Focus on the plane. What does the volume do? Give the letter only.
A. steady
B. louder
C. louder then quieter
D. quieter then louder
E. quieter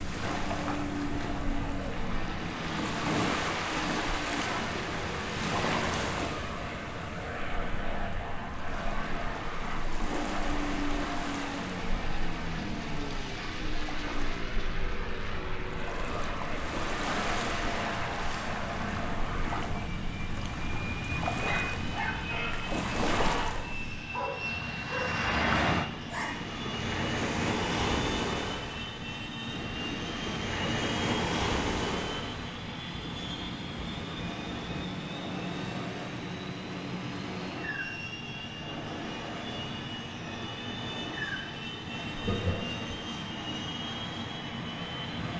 A.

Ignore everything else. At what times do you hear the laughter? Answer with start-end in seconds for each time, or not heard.
42.1-43.0.